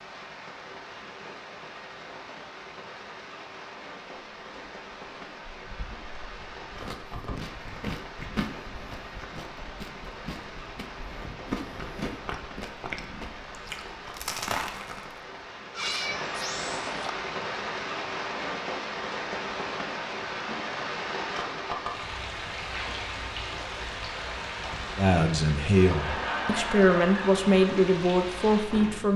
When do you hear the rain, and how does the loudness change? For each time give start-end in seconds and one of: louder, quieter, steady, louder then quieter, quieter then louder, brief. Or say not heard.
0.0-29.1 louder.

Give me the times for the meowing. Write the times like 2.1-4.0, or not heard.
15.7-17.1.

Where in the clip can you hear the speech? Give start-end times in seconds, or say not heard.
24.9-29.1.